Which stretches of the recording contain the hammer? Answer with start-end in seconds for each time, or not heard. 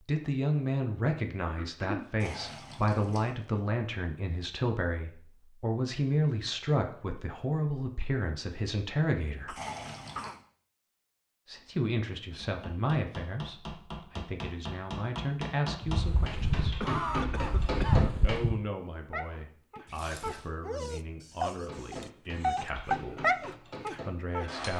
12.3-18.4, 21.6-24.7.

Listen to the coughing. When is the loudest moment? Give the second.
17 s.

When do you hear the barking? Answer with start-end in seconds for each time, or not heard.
19.1-24.5.